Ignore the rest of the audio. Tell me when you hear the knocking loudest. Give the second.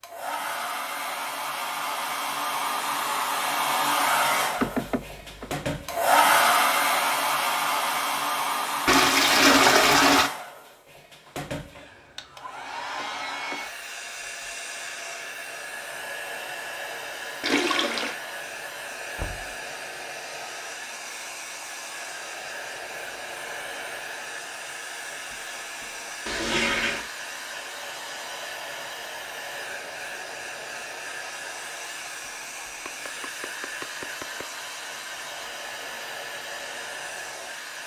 5 s.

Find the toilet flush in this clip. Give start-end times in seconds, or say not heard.
8.8-10.3, 17.4-18.1, 26.2-27.1.